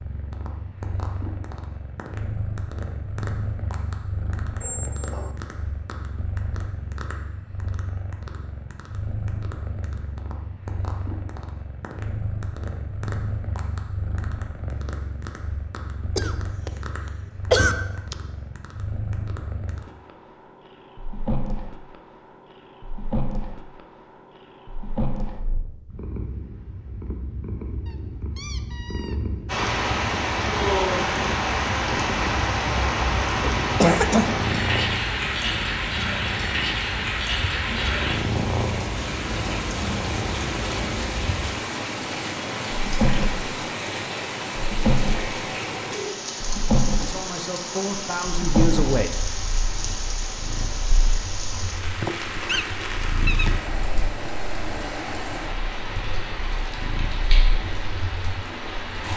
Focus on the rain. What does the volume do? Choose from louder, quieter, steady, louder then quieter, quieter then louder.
quieter.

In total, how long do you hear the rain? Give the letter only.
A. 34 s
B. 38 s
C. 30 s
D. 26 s
C.